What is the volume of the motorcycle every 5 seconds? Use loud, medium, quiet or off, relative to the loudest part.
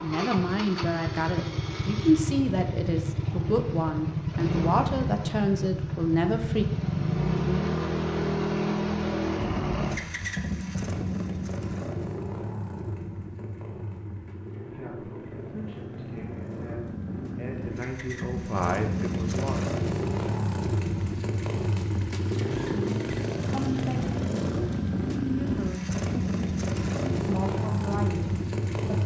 loud, loud, medium, medium, loud, loud.